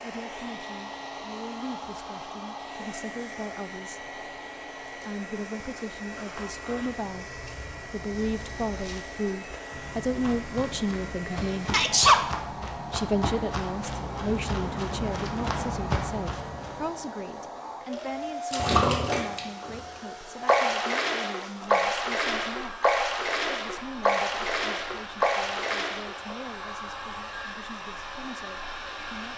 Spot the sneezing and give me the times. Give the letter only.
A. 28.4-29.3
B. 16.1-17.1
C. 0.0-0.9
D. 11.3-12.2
D.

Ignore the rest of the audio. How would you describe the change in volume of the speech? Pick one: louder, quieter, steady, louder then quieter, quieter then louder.
louder then quieter.